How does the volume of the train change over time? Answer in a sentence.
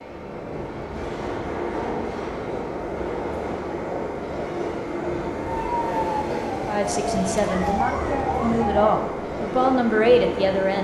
The loudness of the train stays about the same.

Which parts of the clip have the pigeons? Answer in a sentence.
You can't hear the pigeons here.